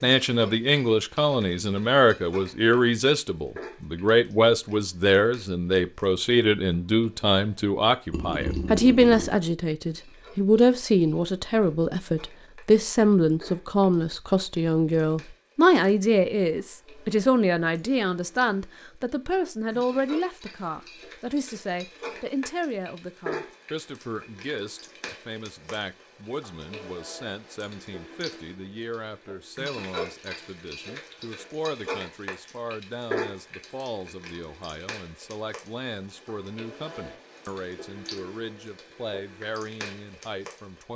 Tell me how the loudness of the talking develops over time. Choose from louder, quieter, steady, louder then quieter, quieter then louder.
quieter.